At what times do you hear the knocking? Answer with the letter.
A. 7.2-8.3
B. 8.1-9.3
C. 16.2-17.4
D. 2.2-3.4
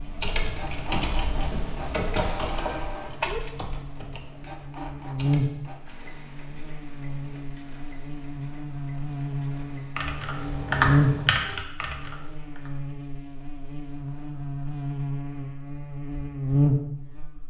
D.